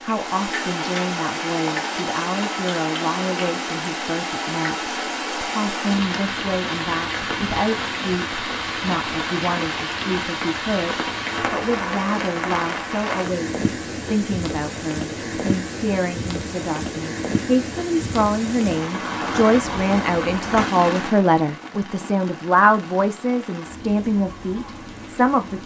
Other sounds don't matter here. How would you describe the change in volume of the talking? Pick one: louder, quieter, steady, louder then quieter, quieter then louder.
louder.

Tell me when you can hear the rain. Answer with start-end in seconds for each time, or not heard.
0.0-25.6.